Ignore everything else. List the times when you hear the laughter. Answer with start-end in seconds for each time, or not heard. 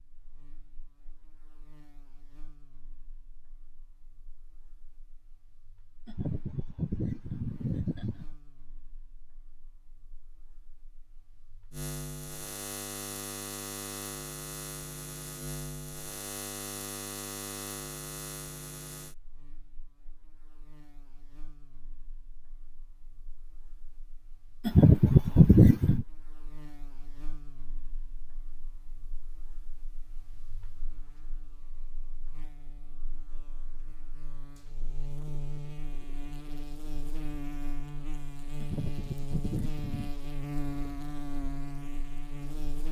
6.0-8.3, 24.6-26.1, 38.6-40.1.